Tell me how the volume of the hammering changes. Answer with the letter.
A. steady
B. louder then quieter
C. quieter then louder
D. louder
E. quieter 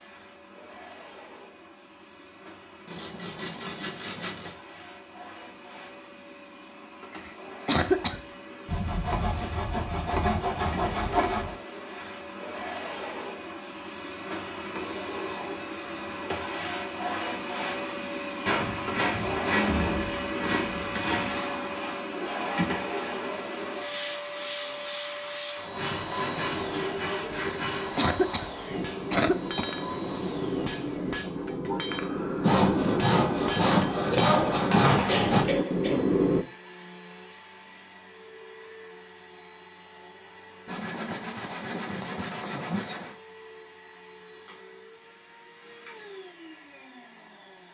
D.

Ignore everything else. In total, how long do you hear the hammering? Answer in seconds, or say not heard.
8 s.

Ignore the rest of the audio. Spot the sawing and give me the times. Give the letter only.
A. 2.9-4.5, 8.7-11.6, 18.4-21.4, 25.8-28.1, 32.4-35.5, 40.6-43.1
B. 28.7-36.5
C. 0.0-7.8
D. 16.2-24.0
A.